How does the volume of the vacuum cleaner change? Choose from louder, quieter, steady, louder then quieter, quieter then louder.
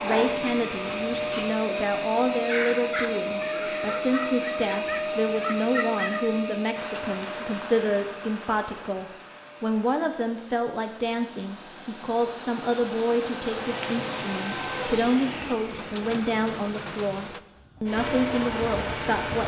quieter then louder.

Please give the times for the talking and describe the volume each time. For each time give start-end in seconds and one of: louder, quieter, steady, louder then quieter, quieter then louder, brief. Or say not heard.
0.0-19.4 steady.